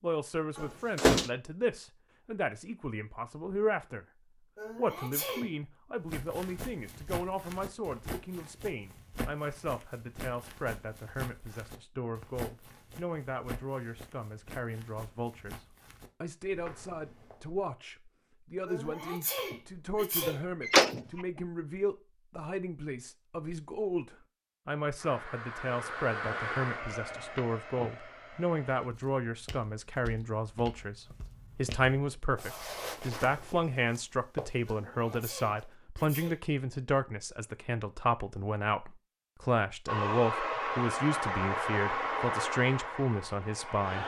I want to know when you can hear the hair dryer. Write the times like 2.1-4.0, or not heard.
24.9-28.9, 39.9-44.0.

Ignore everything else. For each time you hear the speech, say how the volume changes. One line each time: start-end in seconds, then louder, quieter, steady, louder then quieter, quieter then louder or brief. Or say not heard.
0.0-4.0 quieter then louder
4.8-44.0 louder.